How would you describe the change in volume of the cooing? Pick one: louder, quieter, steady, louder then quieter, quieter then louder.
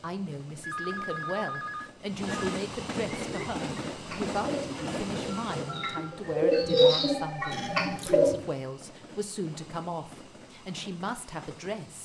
louder then quieter.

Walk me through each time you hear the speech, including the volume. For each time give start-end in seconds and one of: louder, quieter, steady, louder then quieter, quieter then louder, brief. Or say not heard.
0.0-12.0 steady.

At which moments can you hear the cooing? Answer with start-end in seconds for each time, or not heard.
3.0-8.3.